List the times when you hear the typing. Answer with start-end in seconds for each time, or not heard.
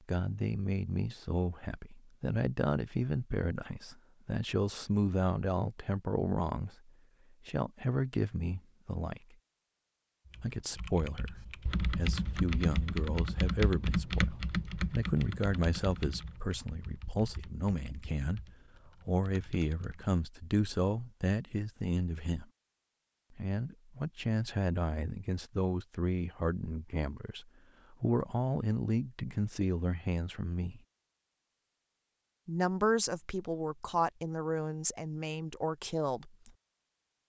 10.3-20.1.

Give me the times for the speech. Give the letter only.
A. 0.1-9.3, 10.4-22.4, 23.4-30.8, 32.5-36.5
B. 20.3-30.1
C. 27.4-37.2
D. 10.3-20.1
A.